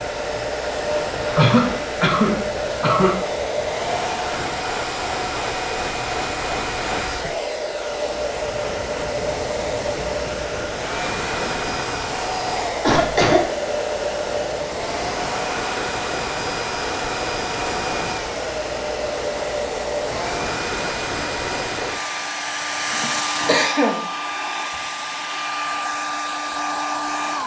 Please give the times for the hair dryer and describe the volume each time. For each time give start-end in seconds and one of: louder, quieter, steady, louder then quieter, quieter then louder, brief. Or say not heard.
0.0-27.4 steady.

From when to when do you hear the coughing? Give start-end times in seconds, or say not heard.
1.4-3.1, 12.8-13.4, 22.9-24.0.